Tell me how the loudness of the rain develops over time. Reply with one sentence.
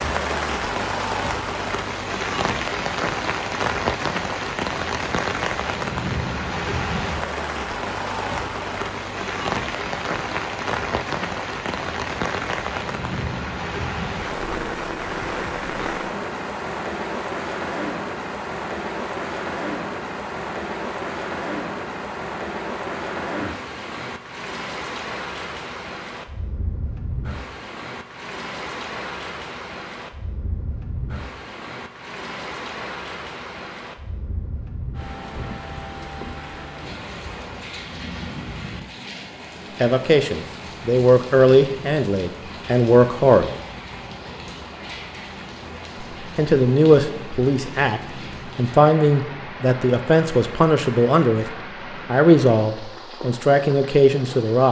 The volume of the rain goes down.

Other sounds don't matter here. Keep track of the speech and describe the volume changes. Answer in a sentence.
The volume of the speech stays about the same.